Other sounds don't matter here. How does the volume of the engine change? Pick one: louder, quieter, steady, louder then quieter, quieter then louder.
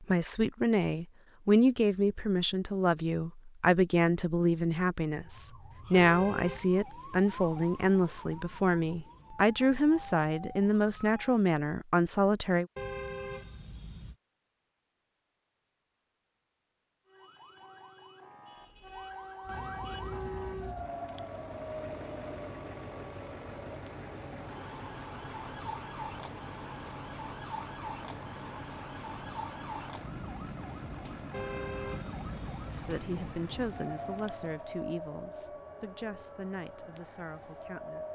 steady.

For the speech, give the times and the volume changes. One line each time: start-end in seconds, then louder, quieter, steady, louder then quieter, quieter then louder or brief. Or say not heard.
0.0-12.7 steady
32.6-38.0 quieter.